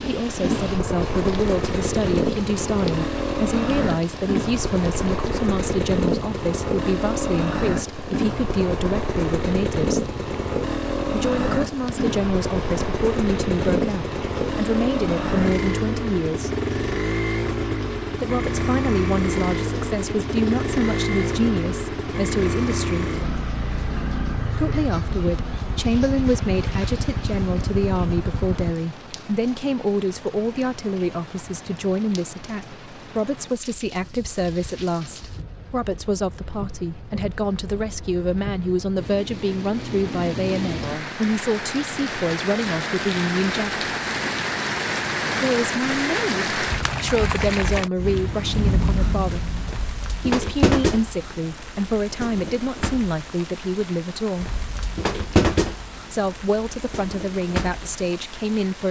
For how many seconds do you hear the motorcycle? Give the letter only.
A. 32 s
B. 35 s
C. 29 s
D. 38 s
C.